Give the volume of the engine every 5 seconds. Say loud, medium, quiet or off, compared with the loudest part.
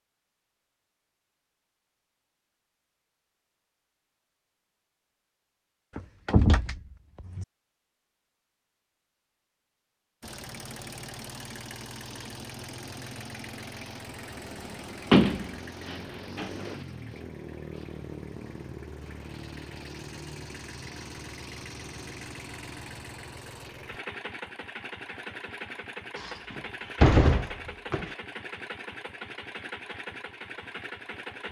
off, off, loud, loud, loud, loud, loud.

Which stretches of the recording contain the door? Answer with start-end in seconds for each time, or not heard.
6.0-7.5, 15.1-16.8, 26.2-28.1.